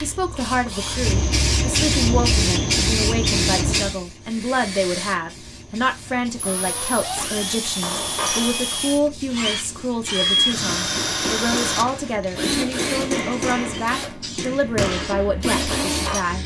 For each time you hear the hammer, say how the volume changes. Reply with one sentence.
You can hear the hammer from 7.2 to 16.2 s, getting quieter then louder.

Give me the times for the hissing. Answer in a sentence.
The hissing can be heard from 0.0 to 16.4 s.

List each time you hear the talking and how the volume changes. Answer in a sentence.
You can hear the talking from 0.0 to 16.4 s, at a steady volume.